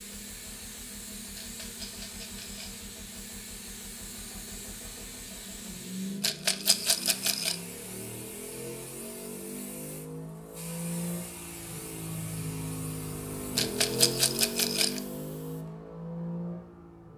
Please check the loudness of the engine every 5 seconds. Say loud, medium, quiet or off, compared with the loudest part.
quiet, medium, loud, loud.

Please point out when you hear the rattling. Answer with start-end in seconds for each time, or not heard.
1.4-2.8, 6.2-7.5, 13.6-15.0.